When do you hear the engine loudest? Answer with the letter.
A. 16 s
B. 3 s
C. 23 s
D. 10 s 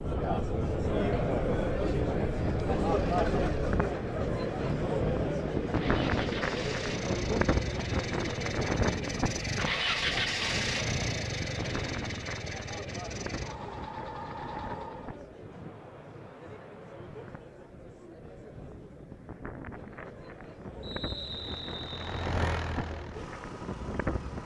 D.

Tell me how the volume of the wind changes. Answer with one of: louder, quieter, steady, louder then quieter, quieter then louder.
quieter then louder.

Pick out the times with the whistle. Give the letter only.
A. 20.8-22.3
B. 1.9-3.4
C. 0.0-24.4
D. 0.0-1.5
A.